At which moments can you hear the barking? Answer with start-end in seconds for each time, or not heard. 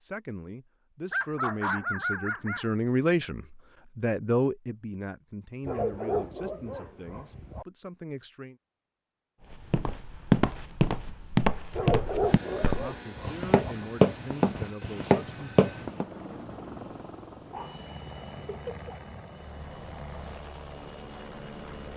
1.1-2.7, 5.7-7.7, 11.8-13.8, 17.4-19.0.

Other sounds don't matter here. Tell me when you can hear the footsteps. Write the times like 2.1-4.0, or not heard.
9.5-16.1.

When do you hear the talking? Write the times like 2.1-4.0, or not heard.
0.0-8.6, 12.4-15.7.